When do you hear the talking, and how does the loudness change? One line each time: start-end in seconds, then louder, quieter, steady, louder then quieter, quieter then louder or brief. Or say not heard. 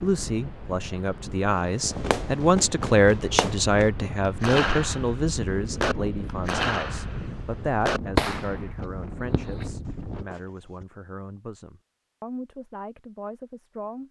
0.0-14.0 quieter.